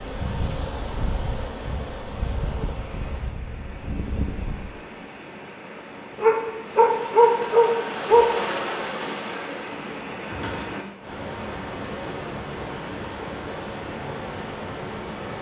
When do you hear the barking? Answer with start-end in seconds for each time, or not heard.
6.2-8.2.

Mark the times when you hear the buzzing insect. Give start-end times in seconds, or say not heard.
0.0-4.7, 6.5-11.0.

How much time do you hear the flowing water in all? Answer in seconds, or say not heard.
15 s.